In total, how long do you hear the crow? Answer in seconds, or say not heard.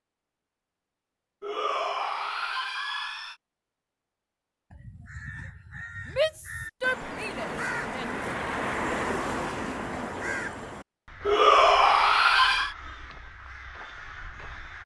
10 s.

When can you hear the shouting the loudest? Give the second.
12 s.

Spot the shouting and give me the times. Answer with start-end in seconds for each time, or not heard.
1.4-3.4, 6.0-8.2, 11.2-12.8.